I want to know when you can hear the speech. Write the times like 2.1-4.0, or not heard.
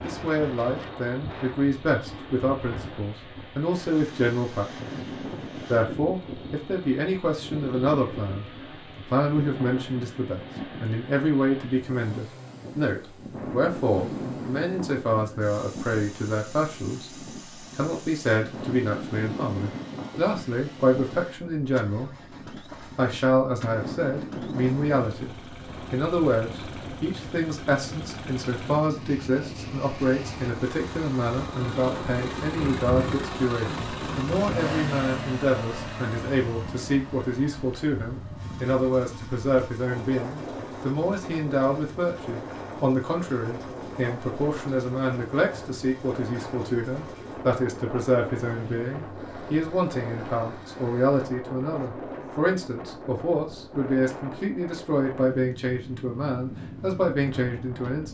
0.0-4.9, 5.7-22.1, 22.9-25.3, 25.9-58.0.